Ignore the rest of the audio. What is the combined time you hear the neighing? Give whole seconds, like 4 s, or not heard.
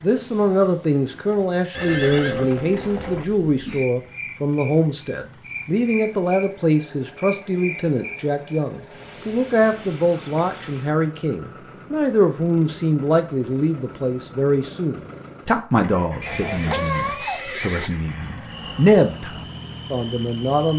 3 s.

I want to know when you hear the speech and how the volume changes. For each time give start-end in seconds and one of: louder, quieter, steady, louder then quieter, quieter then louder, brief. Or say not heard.
0.0-20.7 steady.